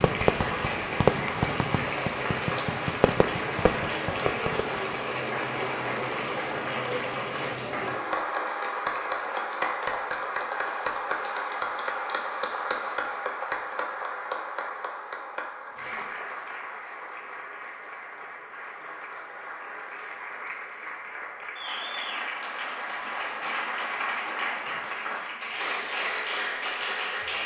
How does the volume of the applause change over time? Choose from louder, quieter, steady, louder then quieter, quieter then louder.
quieter then louder.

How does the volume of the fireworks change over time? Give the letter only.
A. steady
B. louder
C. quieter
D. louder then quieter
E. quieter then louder
C.